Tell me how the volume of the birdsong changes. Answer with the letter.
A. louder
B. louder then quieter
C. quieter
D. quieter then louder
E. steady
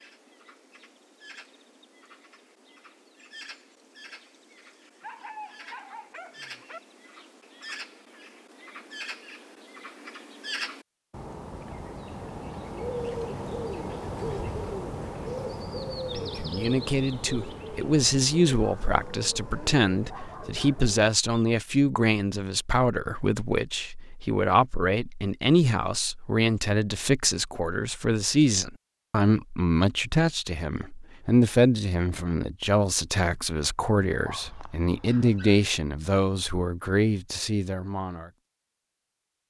B.